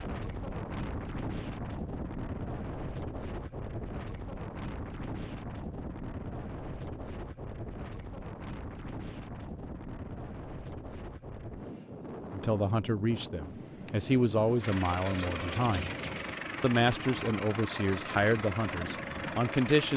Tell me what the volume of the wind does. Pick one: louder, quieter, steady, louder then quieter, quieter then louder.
quieter.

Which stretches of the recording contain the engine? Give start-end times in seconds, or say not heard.
14.6-19.9.